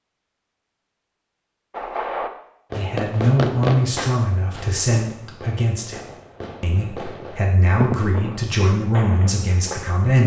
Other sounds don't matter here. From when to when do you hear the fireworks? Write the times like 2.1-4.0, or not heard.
1.7-10.1.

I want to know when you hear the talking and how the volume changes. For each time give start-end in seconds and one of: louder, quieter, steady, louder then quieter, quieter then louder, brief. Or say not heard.
2.8-10.2 quieter then louder.